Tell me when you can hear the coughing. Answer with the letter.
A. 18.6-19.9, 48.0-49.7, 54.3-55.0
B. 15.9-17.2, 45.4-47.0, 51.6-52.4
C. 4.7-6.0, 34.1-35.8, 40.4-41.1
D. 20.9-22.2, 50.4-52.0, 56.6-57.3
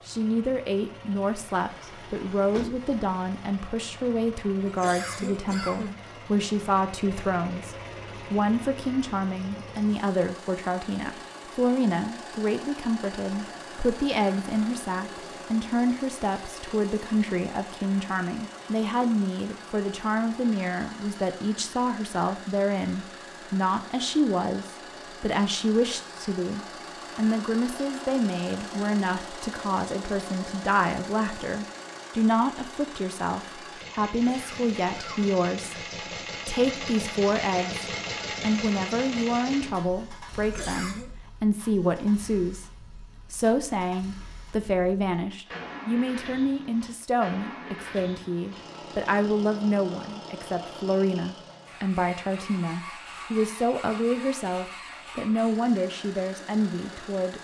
C.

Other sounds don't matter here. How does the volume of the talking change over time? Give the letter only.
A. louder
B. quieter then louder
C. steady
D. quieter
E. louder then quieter
C.